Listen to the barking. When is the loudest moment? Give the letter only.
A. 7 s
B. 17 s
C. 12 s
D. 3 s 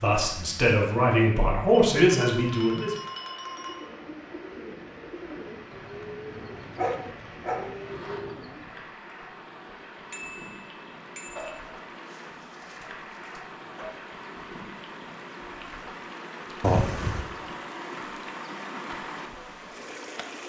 A.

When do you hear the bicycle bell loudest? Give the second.
17 s.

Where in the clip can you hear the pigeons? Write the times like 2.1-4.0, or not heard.
3.4-8.9.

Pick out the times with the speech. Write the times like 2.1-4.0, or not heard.
0.0-3.0.